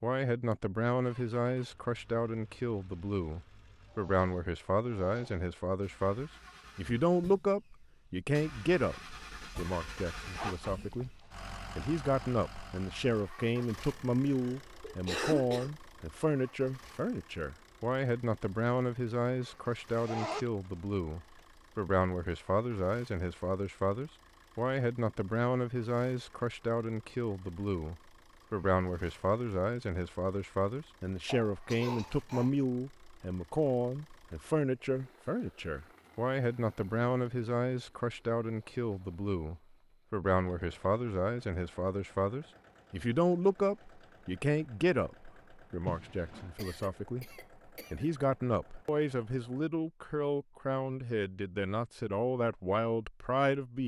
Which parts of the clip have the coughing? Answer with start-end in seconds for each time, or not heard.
14.2-15.7, 31.2-32.5, 46.5-48.1.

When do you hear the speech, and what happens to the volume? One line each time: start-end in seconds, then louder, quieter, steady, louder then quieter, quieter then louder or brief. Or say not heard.
0.0-53.8 steady.